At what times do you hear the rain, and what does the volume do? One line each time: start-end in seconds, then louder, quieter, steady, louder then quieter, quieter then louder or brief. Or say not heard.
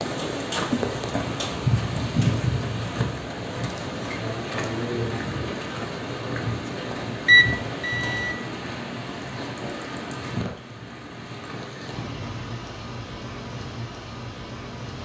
0.0-15.0 quieter.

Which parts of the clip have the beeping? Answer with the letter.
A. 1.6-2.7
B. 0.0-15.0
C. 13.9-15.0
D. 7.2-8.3
D.